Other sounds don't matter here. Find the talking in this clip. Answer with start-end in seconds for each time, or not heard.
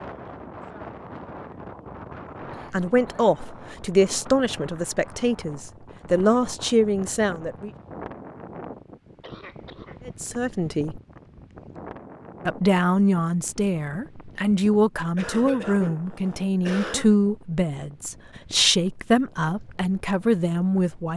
2.7-7.7, 10.1-11.0, 12.4-21.1.